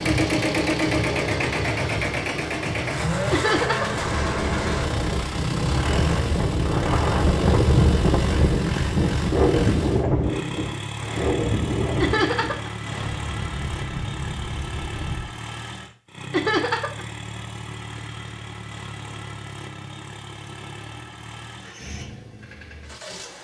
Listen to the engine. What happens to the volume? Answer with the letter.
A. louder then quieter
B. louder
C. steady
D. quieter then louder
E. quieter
E.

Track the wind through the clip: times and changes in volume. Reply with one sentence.
You can hear the wind from 0.0 to 15.3 s, getting louder then quieter.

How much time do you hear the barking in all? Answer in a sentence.
You can't hear the barking here.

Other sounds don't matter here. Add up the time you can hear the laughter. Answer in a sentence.
The laughter can be heard for 2 seconds in total.